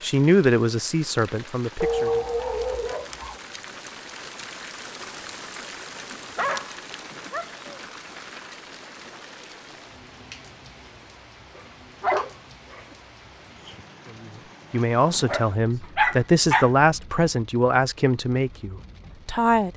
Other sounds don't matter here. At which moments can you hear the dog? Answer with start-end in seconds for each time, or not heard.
1.8-3.4, 6.1-7.9, 11.6-12.8, 15.2-16.7.